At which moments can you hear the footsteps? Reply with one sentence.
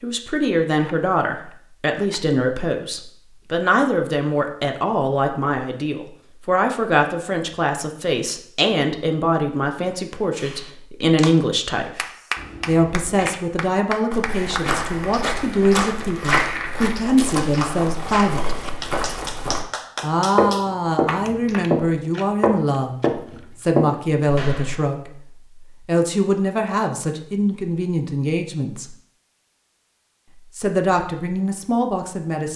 The footsteps can be heard from 14.1 to 19.6 s, from 20.4 to 21.8 s and from 22.4 to 24.8 s.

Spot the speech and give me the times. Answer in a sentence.
The speech can be heard from 0.0 to 12.0 s, from 12.7 to 18.6 s, from 20.0 to 25.2 s, from 25.9 to 28.9 s and from 30.6 to 32.5 s.